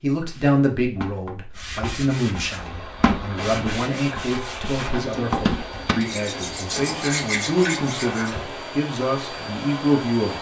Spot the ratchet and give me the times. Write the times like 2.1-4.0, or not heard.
not heard.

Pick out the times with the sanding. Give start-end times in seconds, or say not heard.
0.2-8.3.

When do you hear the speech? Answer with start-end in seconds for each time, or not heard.
0.0-10.3.